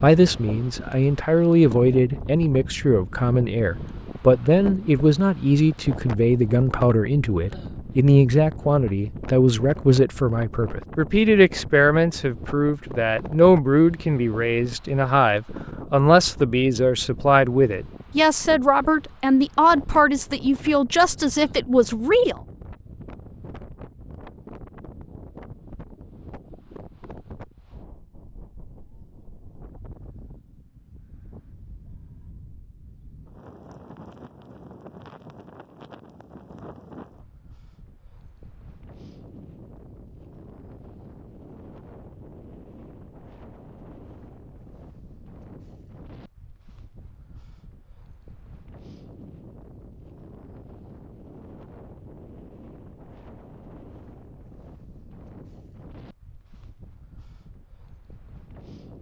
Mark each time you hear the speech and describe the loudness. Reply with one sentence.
You can hear the speech from 0.0 to 22.4 s, at a steady volume.